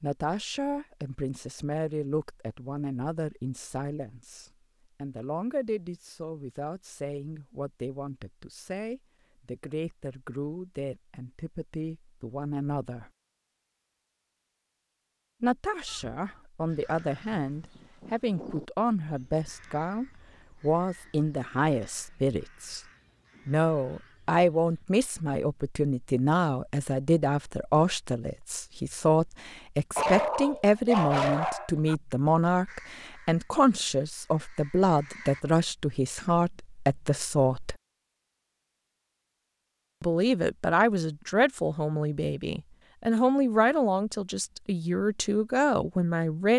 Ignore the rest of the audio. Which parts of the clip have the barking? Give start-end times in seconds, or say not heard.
29.9-31.9.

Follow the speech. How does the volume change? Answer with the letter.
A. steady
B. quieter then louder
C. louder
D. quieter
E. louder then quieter
C.